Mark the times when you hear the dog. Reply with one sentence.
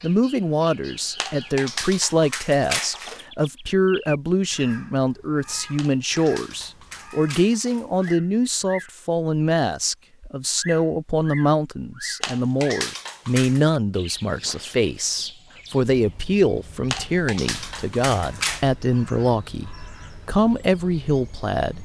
You can hear the dog from 1.2 to 3.2 s, from 5.8 to 8.2 s, from 12.2 to 13.6 s and from 16.9 to 18.7 s.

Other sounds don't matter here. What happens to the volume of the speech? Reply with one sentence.
The loudness of the speech stays about the same.